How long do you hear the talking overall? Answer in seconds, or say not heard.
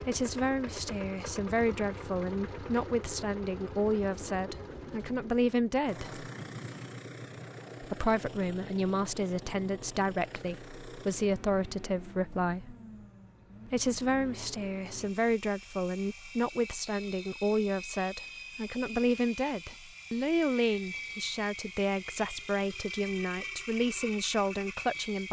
23 s.